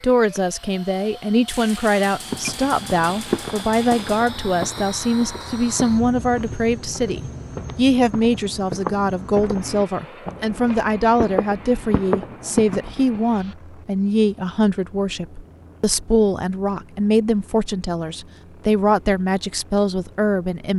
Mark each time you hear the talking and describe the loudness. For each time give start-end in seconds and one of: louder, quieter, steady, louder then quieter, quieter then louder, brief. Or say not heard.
0.0-20.7 steady.